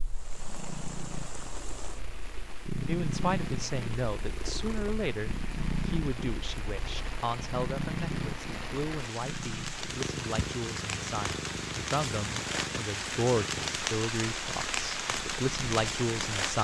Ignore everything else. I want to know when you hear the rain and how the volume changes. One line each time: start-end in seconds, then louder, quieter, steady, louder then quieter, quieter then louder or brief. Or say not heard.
0.0-16.6 louder.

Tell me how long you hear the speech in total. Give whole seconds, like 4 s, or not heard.
14 s.